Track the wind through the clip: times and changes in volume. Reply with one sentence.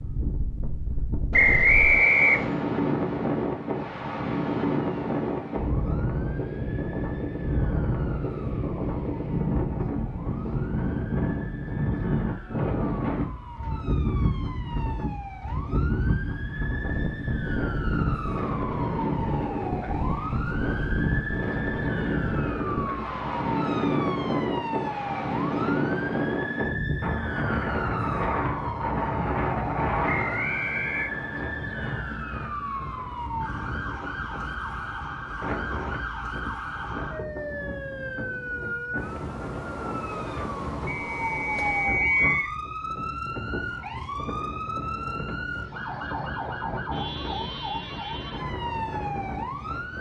The wind can be heard from 0.0 to 49.9 s, getting quieter.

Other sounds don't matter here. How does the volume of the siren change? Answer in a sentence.
The loudness of the siren goes up.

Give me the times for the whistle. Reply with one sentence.
The whistle can be heard from 1.3 to 2.6 s, from 30.1 to 31.1 s and from 40.9 to 42.5 s.